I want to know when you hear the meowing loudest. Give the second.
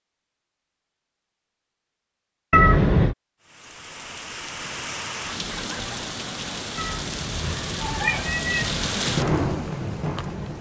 3 s.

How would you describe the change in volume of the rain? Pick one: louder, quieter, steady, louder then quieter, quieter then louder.
louder.